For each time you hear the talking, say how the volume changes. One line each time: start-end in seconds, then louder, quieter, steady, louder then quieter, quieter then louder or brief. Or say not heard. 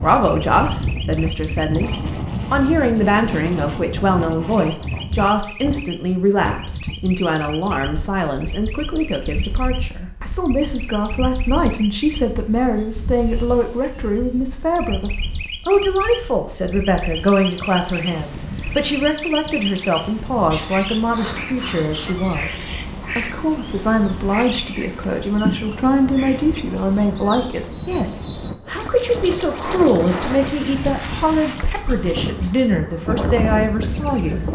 0.0-34.4 steady.